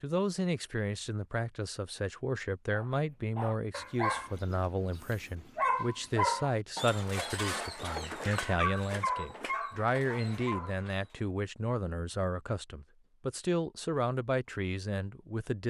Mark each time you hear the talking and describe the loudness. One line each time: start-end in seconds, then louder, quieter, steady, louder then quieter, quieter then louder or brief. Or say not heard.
0.0-15.6 steady.